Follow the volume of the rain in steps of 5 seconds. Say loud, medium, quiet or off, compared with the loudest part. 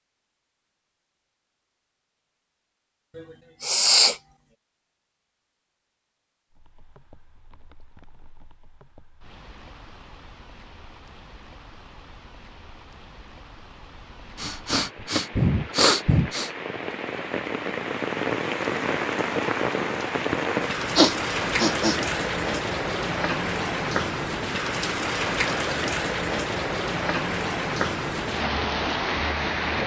off, quiet, quiet, loud, loud, loud.